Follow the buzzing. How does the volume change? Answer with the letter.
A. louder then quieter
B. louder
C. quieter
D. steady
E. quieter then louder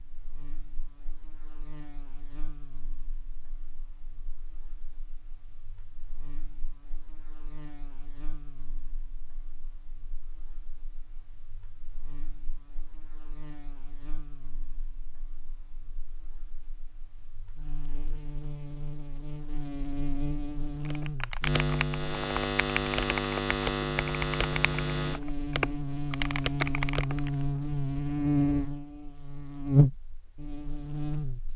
B.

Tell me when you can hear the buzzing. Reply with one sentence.
You can hear the buzzing from 0.0 to 31.5 s.